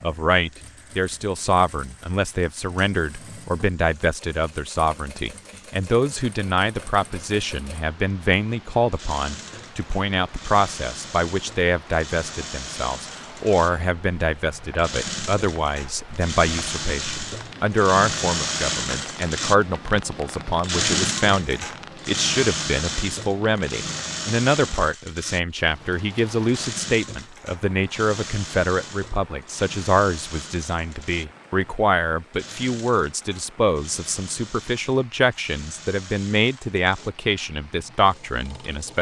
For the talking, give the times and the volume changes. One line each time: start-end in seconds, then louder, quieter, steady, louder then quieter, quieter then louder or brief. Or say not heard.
0.0-38.9 steady.